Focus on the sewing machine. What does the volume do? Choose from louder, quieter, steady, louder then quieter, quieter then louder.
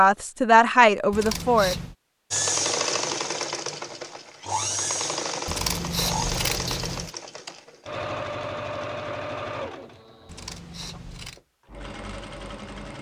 quieter.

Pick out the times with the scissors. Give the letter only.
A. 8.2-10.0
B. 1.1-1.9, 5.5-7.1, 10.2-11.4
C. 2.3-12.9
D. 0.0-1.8
B.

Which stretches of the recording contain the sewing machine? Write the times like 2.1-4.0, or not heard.
2.3-12.9.